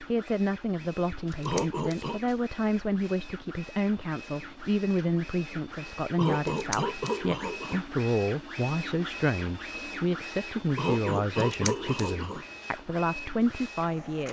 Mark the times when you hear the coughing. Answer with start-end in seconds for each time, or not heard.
1.4-2.2, 6.2-7.8, 10.8-12.4.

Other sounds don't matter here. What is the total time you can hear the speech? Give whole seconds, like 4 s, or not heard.
14 s.